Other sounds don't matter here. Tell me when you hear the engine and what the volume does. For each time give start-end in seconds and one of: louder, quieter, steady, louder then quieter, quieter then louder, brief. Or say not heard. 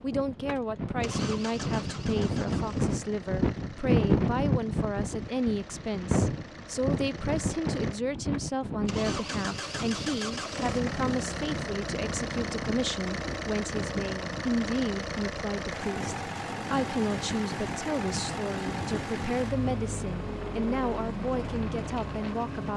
0.0-22.7 louder.